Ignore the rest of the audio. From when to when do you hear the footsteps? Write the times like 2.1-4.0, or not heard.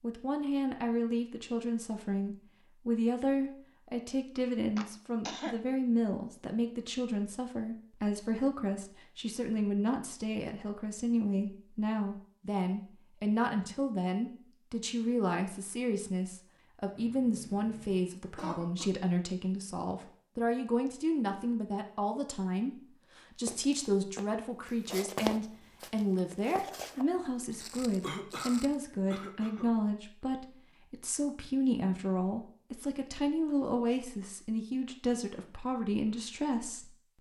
23.4-28.8.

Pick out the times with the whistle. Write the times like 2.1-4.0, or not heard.
not heard.